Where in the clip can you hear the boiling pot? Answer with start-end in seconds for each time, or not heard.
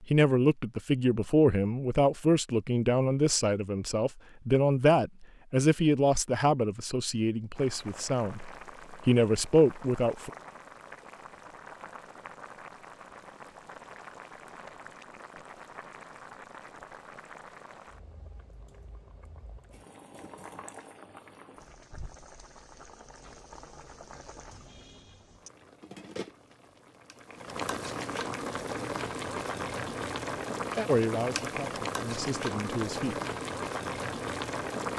7.5-34.9.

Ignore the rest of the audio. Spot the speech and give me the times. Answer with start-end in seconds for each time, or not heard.
0.0-10.3, 30.9-33.1.